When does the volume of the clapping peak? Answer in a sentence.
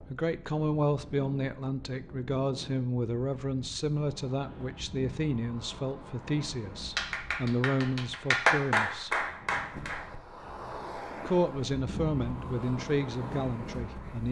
The volume of the clapping peaks at 9 seconds.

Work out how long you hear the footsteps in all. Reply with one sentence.
You can't hear the footsteps here.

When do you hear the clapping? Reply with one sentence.
The clapping can be heard from 7.0 to 10.1 s.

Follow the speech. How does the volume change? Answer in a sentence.
The volume of the speech stays about the same.